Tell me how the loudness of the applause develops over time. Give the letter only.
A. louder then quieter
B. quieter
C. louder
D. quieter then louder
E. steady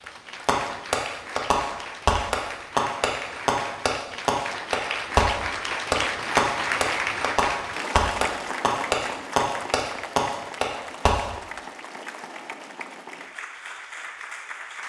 A.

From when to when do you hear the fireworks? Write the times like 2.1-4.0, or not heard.
0.5-11.3.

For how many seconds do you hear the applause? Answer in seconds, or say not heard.
15 s.